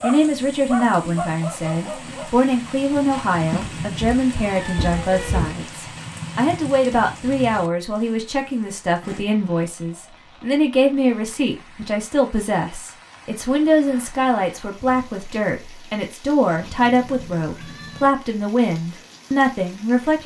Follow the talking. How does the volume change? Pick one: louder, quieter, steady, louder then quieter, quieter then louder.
steady.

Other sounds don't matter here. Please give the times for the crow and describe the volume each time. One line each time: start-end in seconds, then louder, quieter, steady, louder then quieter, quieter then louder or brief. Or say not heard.
not heard.